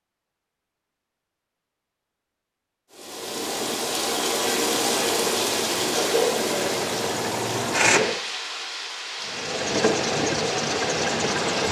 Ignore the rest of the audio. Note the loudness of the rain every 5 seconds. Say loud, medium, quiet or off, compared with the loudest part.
loud, loud, medium.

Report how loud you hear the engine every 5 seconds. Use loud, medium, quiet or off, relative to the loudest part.
off, loud, loud.